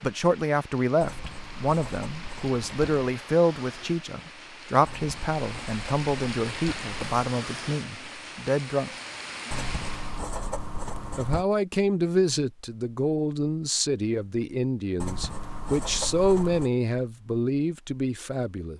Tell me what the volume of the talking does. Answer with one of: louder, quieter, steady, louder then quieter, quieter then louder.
steady.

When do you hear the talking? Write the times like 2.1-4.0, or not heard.
0.0-8.9, 11.2-18.7.